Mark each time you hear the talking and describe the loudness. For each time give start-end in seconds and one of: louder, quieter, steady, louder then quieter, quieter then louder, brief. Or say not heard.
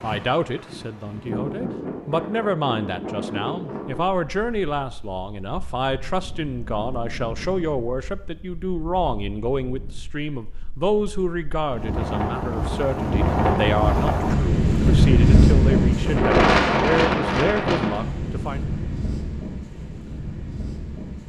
0.0-18.7 steady.